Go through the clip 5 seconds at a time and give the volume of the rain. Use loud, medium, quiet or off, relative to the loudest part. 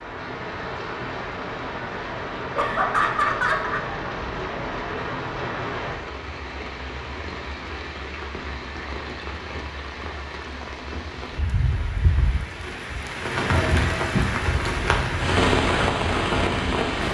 medium, medium, medium, loud.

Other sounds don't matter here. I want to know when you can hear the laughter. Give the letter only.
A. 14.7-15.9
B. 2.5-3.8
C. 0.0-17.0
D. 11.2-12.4
B.